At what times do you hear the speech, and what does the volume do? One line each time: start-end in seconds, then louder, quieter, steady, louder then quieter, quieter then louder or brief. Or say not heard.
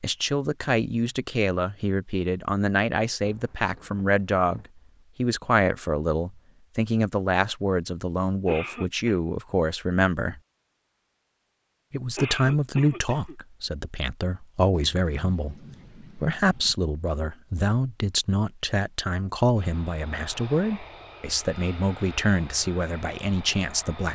0.0-10.4 steady
11.9-24.1 steady.